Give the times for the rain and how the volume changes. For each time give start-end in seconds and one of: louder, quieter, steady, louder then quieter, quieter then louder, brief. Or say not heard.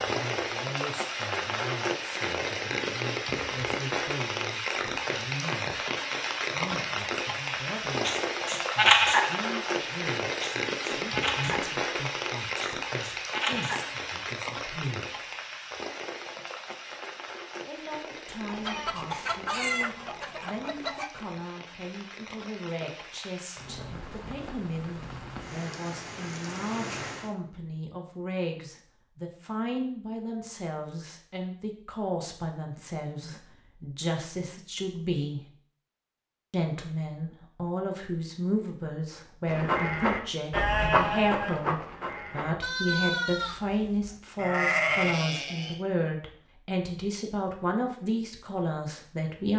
0.0-27.4 quieter.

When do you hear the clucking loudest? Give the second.
20 s.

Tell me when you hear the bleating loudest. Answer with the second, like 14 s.
9 s.